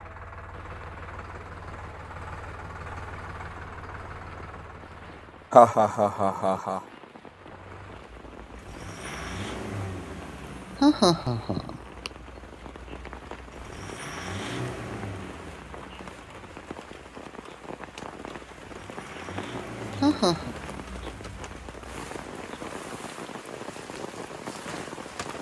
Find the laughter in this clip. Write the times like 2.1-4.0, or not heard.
5.5-6.8, 10.8-12.1, 20.0-20.5.